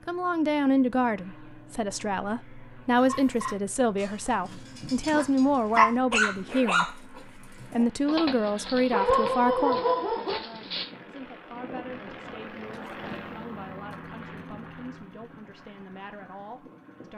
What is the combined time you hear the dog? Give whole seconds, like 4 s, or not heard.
8 s.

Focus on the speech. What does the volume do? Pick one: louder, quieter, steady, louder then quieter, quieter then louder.
quieter.